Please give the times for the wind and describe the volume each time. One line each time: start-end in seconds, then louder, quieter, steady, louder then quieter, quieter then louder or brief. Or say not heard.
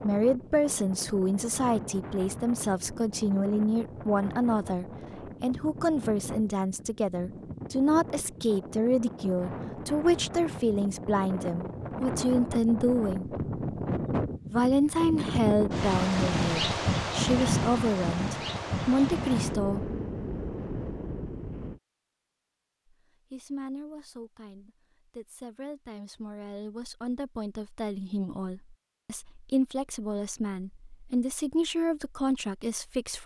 0.0-21.8 louder.